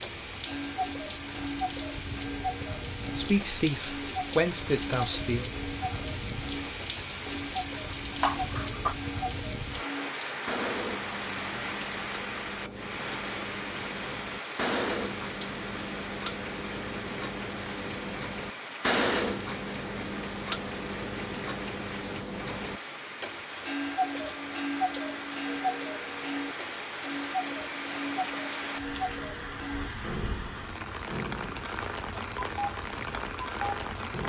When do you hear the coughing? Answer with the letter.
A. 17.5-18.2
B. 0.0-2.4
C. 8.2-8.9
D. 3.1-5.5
C.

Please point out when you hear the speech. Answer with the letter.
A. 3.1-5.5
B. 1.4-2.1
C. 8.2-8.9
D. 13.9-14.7
A.